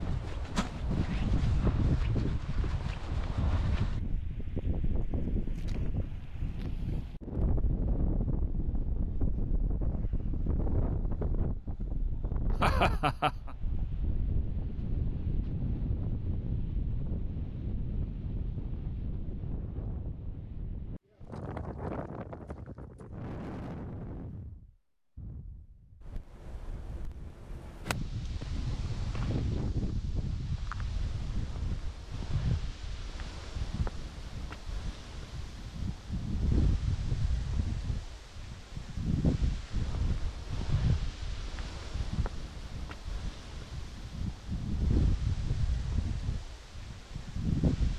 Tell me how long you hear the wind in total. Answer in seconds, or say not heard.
48 s.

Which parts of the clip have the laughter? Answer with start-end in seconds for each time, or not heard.
11.9-13.6.